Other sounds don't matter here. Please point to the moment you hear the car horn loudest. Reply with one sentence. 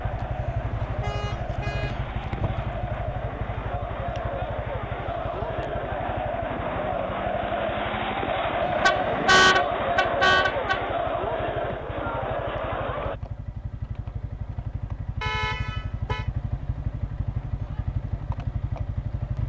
The volume of the car horn peaks at 9 seconds.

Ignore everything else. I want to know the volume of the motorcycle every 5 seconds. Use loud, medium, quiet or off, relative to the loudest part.
loud, medium, medium, loud.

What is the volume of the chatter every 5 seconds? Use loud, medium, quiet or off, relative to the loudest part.
medium, loud, loud, off.